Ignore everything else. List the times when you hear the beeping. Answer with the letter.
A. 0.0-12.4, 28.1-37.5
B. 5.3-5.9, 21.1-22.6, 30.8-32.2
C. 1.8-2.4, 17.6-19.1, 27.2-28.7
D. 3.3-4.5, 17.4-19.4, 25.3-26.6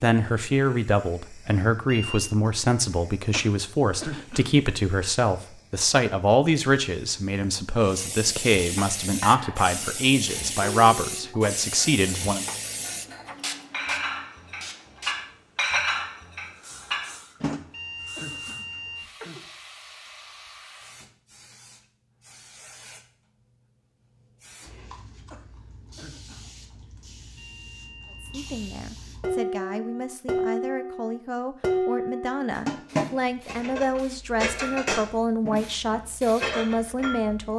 C.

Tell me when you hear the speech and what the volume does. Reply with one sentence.
The speech can be heard from 0.0 to 12.4 s, at a steady volume; and from 28.1 to 37.5 s, getting louder.